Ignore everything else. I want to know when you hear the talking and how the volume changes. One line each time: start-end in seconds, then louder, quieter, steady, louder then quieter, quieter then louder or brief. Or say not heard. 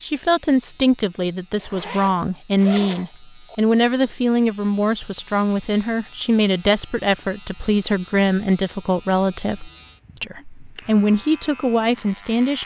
0.0-12.6 steady.